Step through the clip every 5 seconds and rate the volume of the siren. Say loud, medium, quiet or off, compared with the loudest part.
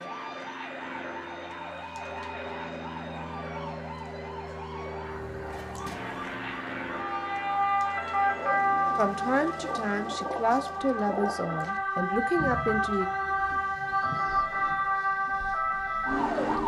quiet, loud, loud, loud.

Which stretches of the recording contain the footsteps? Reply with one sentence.
The footsteps can't be heard in this clip.